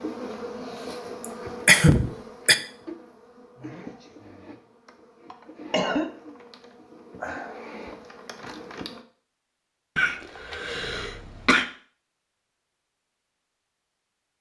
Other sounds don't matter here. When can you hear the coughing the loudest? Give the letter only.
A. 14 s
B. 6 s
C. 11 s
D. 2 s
D.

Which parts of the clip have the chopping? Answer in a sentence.
You can't hear the chopping here.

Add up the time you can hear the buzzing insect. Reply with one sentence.
You can hear the buzzing insect for 9 seconds altogether.